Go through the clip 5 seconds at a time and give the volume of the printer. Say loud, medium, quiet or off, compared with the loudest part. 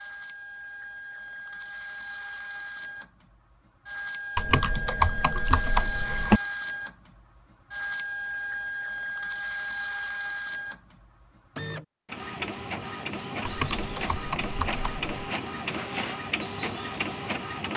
medium, loud, loud, loud.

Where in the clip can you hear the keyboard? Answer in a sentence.
You can hear the keyboard from 4.3 to 6.4 s and from 13.4 to 15.1 s.